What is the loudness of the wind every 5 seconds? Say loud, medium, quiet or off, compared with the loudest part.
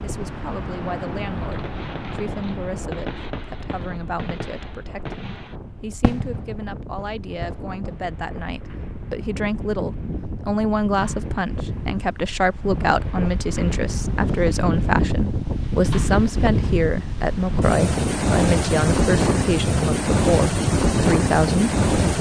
quiet, quiet, medium, loud, loud.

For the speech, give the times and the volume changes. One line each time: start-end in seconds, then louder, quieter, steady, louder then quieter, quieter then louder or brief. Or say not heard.
0.0-22.1 louder.